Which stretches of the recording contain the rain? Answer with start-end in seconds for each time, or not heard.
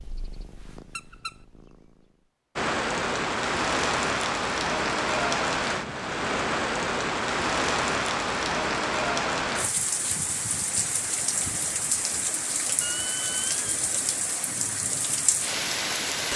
2.5-16.3.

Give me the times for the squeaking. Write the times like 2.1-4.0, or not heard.
0.9-1.4, 12.8-13.7.